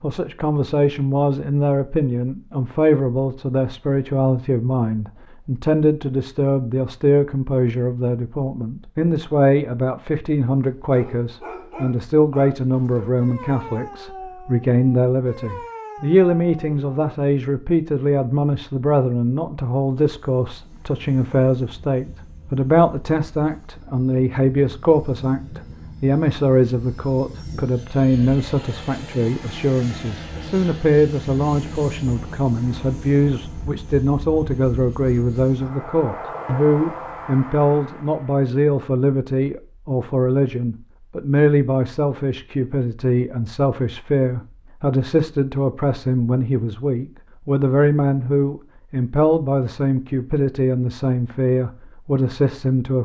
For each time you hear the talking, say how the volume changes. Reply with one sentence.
You can hear the talking from 0.0 to 52.9 s, at a steady volume.